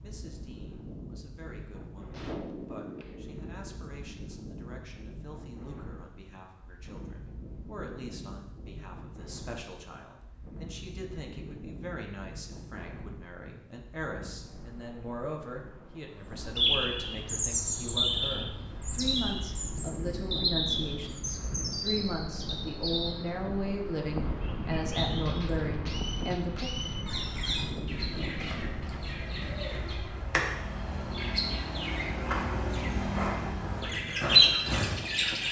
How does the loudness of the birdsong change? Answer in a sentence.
The volume of the birdsong goes down, then up.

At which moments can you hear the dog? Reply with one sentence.
The dog can't be heard in this clip.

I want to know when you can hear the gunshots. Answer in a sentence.
You can hear the gunshots from 2.1 to 3.8 s and from 25.2 to 27.1 s.